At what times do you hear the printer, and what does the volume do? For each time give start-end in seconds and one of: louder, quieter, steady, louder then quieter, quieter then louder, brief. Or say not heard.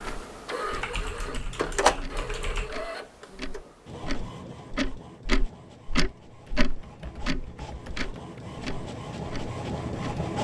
0.0-10.3 quieter then louder.